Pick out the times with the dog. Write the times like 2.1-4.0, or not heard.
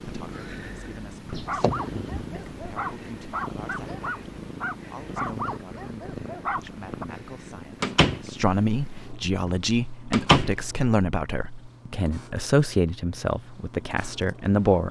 1.4-7.0.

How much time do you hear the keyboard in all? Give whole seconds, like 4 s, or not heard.
not heard.